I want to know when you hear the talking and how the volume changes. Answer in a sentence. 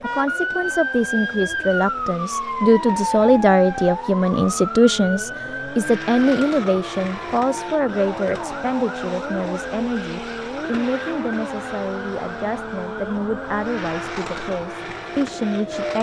The talking can be heard from 0.0 to 15.9 s, getting quieter.